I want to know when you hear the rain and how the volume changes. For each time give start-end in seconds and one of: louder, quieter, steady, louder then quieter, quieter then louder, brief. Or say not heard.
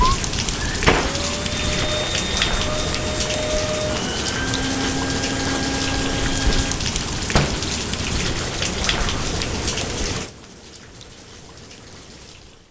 0.0-12.6 quieter.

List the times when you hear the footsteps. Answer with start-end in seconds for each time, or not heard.
not heard.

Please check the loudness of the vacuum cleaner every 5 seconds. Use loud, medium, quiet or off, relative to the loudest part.
loud, loud, off.